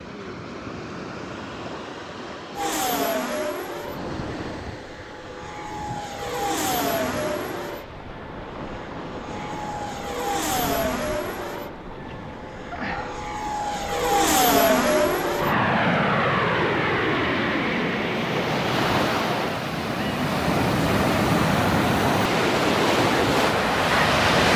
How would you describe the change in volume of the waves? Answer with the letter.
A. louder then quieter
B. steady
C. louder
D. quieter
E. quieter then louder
C.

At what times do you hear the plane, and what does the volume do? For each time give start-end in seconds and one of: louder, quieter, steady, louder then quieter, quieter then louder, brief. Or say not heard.
2.5-19.6 louder.